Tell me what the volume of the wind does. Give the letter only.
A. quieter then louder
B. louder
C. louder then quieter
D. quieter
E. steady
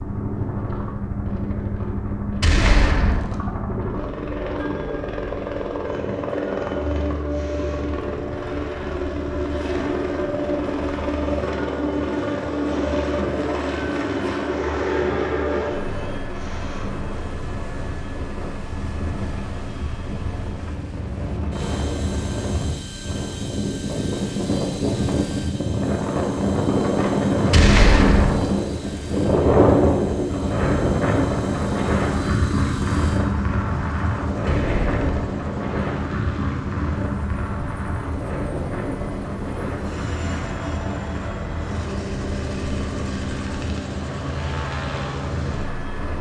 C.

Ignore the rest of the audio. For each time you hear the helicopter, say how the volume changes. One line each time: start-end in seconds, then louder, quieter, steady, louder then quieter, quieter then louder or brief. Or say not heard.
0.0-46.1 quieter then louder.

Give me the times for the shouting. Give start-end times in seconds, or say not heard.
not heard.